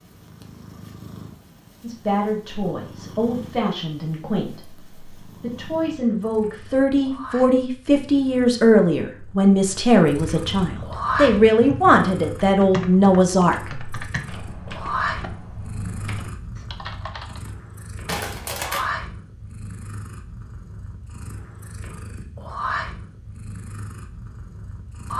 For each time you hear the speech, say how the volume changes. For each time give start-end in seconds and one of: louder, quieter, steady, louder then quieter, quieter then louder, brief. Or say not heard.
1.8-13.9 louder.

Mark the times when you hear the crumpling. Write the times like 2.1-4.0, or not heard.
18.1-18.9.